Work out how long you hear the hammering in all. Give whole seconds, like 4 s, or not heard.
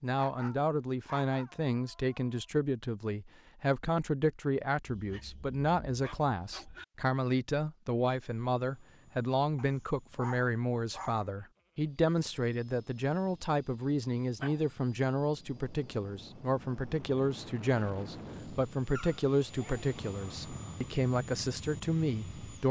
not heard.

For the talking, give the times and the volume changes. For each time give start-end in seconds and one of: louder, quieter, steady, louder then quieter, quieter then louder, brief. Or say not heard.
0.0-22.6 steady.